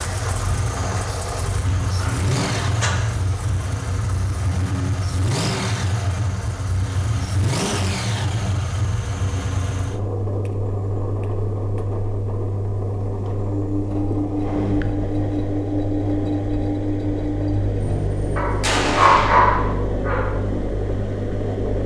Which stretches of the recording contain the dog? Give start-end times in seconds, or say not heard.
1.6-3.5, 18.4-20.2.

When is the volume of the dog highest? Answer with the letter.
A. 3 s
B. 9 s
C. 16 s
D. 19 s
D.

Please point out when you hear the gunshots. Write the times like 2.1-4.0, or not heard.
17.8-19.8.